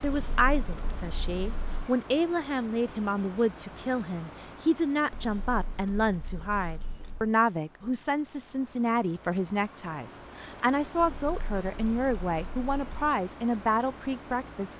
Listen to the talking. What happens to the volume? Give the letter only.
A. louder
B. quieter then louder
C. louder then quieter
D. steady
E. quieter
D.